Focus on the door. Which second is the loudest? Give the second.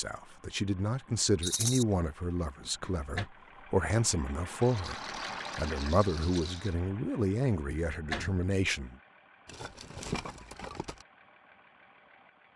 8 s.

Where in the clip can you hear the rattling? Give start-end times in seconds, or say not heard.
1.4-1.9, 4.6-6.8, 9.4-11.1.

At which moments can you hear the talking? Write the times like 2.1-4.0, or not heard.
0.0-8.9.